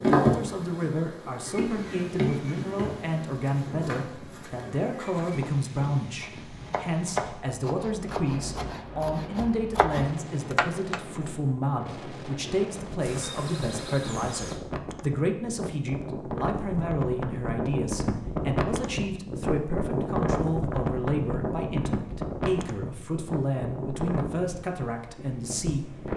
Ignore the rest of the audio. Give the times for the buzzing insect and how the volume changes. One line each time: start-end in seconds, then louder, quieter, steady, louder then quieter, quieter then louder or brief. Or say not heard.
0.0-5.4 louder then quieter
13.0-14.6 brief.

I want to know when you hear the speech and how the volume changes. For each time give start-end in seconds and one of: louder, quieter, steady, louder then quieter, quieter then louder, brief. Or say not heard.
0.1-26.1 steady.